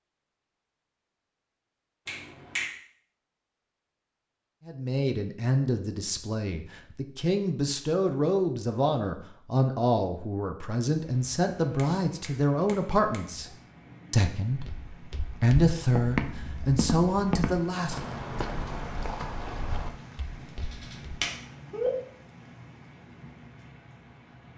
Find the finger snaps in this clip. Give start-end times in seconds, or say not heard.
2.0-2.7, 11.8-13.2, 20.7-21.9.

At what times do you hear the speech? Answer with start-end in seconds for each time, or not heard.
4.7-13.5, 14.1-18.1.